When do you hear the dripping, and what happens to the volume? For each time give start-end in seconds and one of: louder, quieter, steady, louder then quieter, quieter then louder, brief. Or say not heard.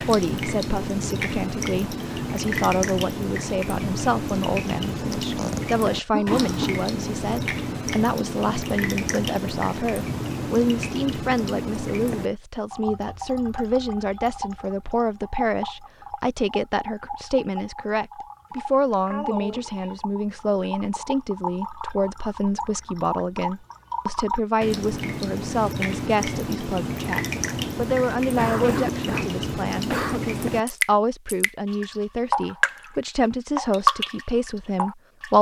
0.0-35.3 quieter then louder.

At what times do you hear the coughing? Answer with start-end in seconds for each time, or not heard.
5.3-6.8, 18.5-19.9, 28.4-30.2.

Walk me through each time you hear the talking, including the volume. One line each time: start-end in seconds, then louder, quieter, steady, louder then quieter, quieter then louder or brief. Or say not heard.
0.0-35.3 steady.